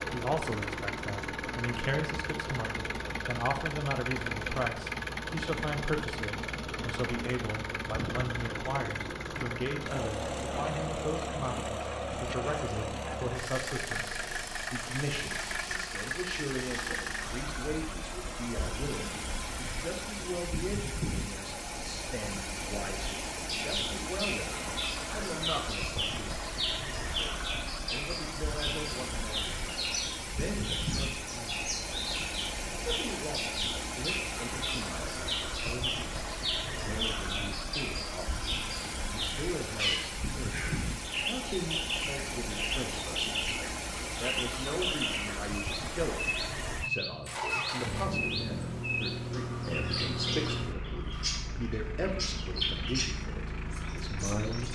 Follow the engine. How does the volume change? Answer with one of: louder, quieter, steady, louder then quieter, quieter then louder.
steady.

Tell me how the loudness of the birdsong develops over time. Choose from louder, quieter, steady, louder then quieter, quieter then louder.
steady.